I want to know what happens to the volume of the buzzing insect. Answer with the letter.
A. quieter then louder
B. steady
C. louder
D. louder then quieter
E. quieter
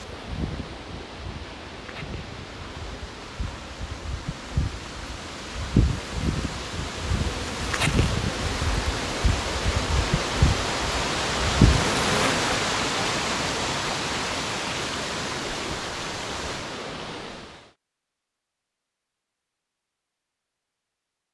C.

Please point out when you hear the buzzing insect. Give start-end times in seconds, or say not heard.
0.0-12.5.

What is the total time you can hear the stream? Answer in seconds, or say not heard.
18 s.